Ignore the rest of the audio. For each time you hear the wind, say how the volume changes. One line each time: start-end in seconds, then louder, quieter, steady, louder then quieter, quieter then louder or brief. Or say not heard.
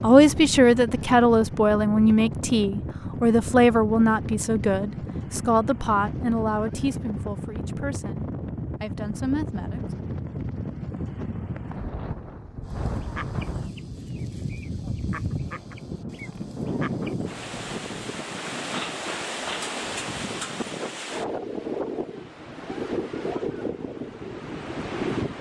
0.0-25.3 steady.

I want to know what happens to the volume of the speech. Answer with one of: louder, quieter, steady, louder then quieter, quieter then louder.
quieter.